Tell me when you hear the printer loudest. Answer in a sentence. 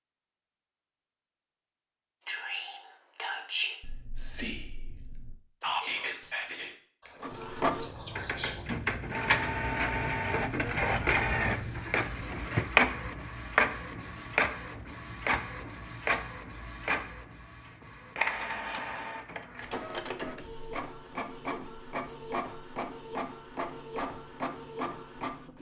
The loudest moment of the printer is at 13 seconds.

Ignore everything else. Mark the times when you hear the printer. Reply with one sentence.
The printer can be heard from 7.2 to 25.5 s.